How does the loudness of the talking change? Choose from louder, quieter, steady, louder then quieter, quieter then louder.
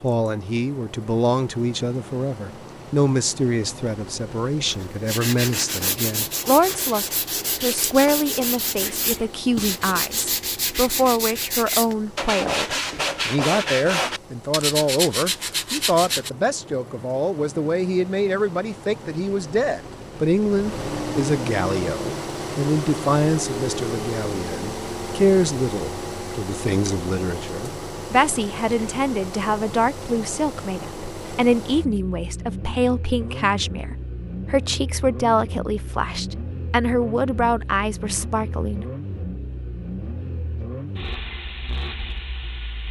steady.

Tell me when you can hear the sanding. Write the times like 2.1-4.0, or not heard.
4.7-16.3.